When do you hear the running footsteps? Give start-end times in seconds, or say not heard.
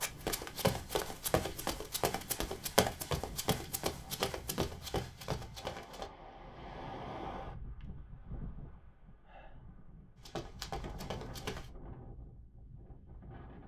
0.0-6.1, 10.2-11.7.